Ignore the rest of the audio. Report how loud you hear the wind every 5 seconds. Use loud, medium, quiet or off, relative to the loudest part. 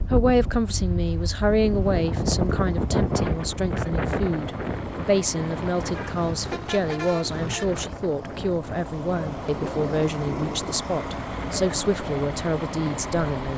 loud, medium, medium.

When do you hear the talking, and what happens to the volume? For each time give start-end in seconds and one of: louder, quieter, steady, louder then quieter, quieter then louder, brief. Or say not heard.
0.0-13.5 steady.